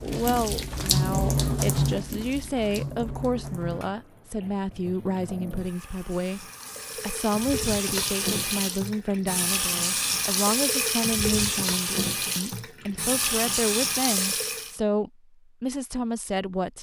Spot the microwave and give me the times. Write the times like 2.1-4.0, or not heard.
not heard.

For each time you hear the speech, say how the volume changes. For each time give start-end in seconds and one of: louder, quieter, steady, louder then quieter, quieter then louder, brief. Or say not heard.
0.0-16.7 steady.